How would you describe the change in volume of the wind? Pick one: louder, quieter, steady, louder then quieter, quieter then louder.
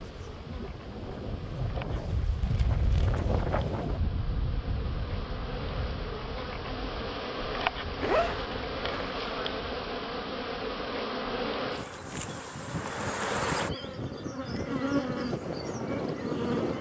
quieter then louder.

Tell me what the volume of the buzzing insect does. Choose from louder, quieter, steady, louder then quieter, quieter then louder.
louder.